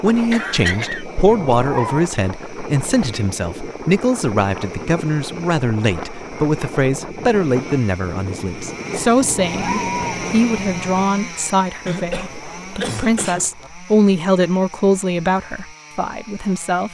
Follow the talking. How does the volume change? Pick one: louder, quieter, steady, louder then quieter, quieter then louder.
steady.